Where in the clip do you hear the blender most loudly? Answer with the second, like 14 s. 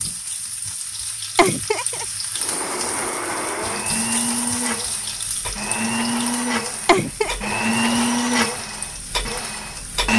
8 s.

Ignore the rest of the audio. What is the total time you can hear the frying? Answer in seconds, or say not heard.
10 s.